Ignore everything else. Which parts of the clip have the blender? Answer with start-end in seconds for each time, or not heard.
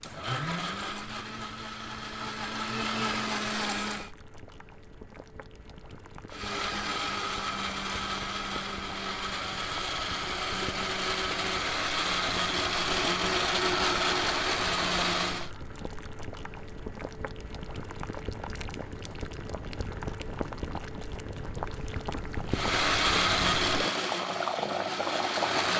0.0-4.1, 6.3-15.5, 22.5-25.7.